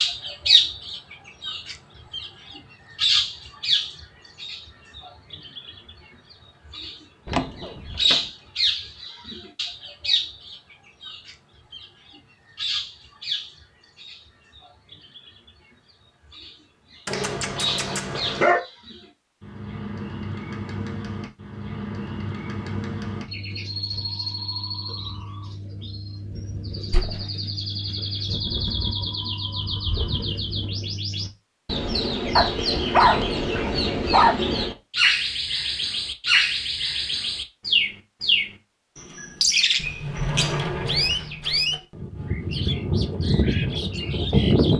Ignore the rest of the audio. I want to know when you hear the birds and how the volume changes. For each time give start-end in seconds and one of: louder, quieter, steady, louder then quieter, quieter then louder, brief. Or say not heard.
0.0-44.7 quieter then louder.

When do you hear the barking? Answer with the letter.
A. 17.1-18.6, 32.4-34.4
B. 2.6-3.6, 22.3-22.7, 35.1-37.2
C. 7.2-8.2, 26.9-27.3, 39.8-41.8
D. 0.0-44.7
A.